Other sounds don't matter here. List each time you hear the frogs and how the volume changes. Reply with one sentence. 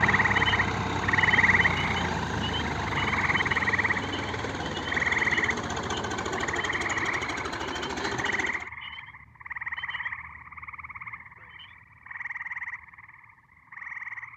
The frogs can be heard from 0.0 to 14.3 s, getting quieter.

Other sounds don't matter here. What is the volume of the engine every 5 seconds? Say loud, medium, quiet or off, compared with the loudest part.
loud, loud, off.